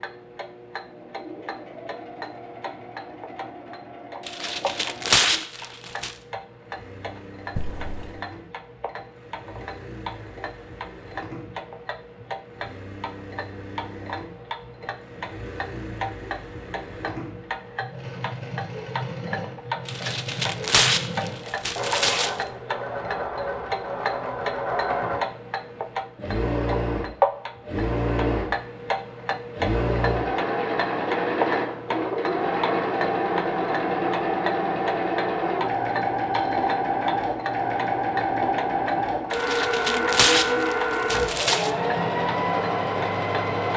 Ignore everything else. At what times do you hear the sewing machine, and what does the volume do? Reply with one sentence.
You can hear the sewing machine from 0.0 to 43.7 s, getting louder.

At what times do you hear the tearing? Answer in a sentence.
You can hear the tearing from 4.2 to 6.2 s, from 19.9 to 22.4 s and from 39.3 to 41.7 s.